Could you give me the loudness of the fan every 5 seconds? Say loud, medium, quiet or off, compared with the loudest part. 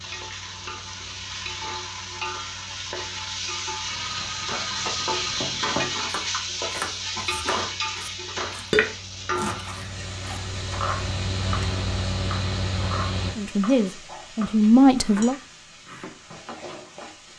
quiet, quiet, loud, off.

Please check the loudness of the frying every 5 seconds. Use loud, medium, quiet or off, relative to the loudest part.
loud, loud, medium, quiet.